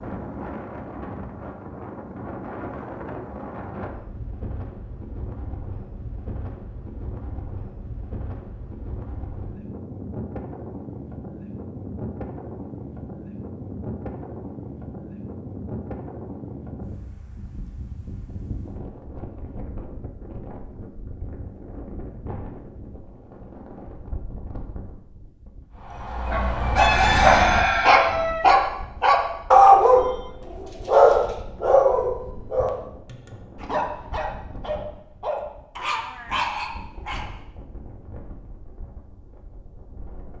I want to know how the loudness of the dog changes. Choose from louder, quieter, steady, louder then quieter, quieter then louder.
louder then quieter.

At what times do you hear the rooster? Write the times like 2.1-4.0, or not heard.
26.8-28.4.